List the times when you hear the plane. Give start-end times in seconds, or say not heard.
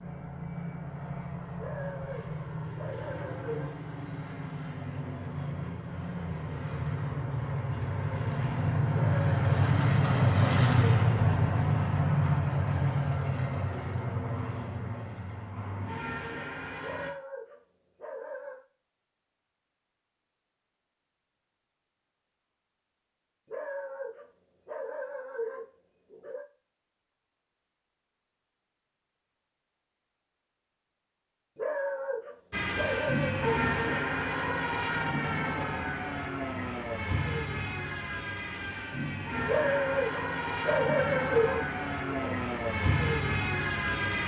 0.0-17.1, 32.5-44.2.